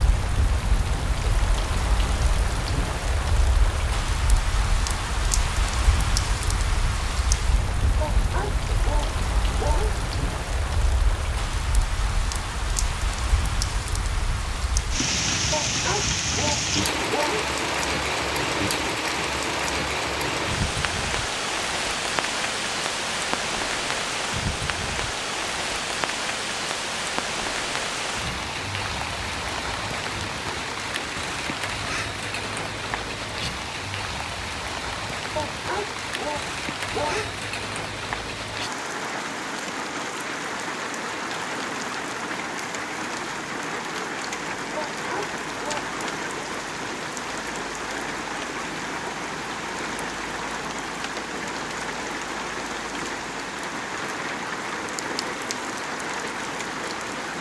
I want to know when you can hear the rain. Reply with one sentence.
You can hear the rain from 0.0 to 57.3 s.